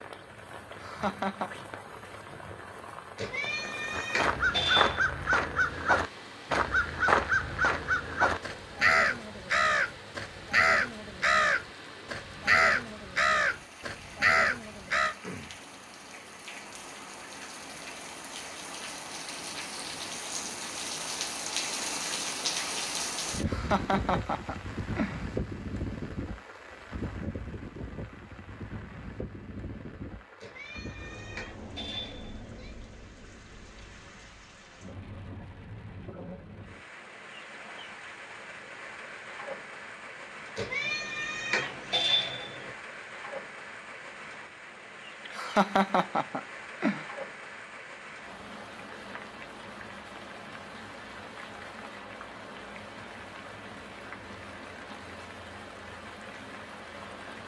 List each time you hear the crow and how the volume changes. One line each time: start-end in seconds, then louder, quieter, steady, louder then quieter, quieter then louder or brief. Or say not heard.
3.9-15.2 steady.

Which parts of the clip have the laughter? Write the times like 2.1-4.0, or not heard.
0.7-1.5, 23.4-25.2, 45.2-47.0.